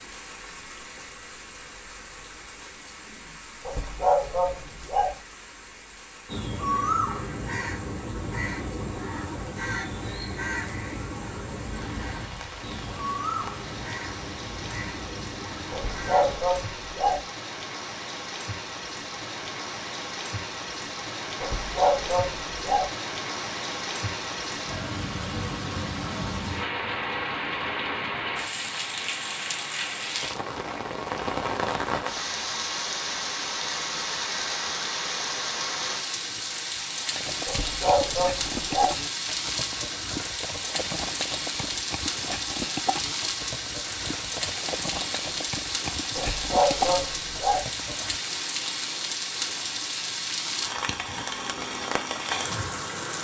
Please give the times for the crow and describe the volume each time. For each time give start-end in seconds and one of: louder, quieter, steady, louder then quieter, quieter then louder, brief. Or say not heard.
6.2-16.4 quieter.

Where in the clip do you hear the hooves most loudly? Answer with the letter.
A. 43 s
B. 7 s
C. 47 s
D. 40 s
C.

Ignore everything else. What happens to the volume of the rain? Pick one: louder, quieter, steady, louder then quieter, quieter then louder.
louder.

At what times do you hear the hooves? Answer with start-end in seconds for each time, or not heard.
37.1-48.2.